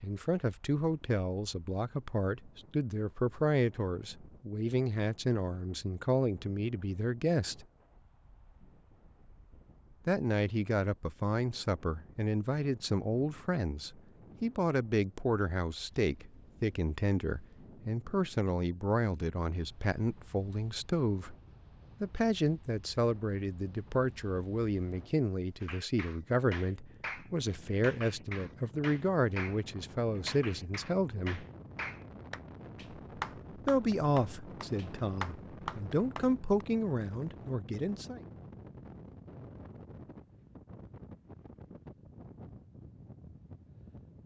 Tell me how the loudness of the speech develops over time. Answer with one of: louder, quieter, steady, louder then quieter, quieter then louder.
steady.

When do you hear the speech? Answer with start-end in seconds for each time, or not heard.
0.0-7.7, 10.1-21.4, 22.0-31.4, 33.6-38.2.